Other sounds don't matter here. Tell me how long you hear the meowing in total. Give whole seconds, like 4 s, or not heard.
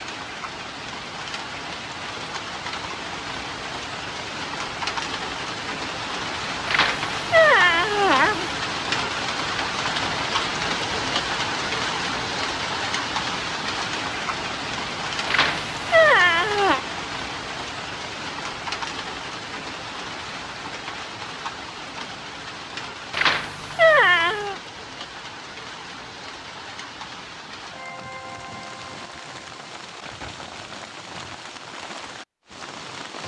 5 s.